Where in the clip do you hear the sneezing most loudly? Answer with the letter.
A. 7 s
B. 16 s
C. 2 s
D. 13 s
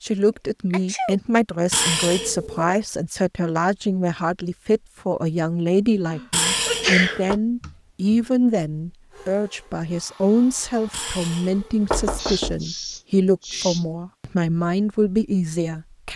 A.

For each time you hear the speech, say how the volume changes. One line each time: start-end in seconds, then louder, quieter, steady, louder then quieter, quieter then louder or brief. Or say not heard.
0.0-16.1 steady.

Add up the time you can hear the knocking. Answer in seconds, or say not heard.
4 s.